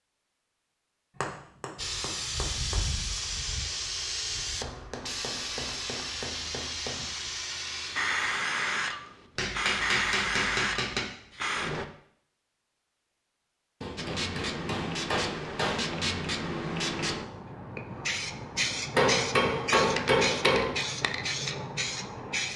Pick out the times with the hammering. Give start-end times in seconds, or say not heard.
1.2-2.8, 4.6-7.0, 9.3-11.0, 13.8-15.8, 18.9-20.9.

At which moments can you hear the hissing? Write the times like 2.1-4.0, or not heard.
1.8-11.8, 13.9-22.5.